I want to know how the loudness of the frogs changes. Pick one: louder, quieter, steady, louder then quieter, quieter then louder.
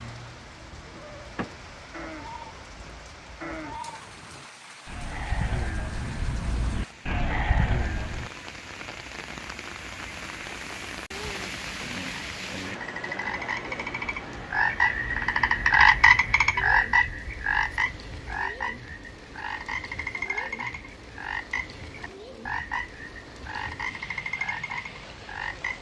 louder then quieter.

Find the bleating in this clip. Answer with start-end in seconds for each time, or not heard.
0.8-8.3.